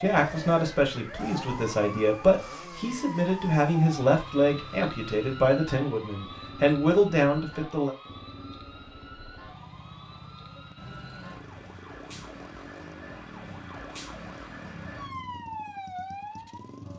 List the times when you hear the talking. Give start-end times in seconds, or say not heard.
0.0-7.9.